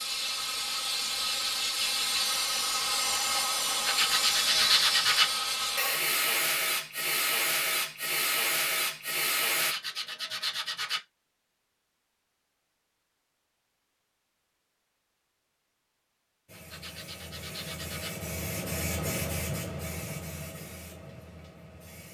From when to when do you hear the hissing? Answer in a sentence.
The hissing can be heard from 0.0 to 9.8 s and from 16.4 to 22.0 s.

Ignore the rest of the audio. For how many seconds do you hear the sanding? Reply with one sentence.
The sanding can be heard for 5 seconds in total.